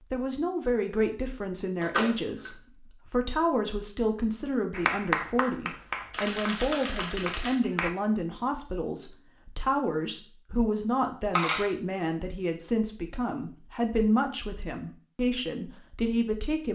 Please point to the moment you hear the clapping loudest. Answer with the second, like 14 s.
5 s.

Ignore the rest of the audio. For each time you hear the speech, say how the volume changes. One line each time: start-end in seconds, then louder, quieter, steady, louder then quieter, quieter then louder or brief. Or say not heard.
0.1-16.7 steady.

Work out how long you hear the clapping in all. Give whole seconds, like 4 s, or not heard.
3 s.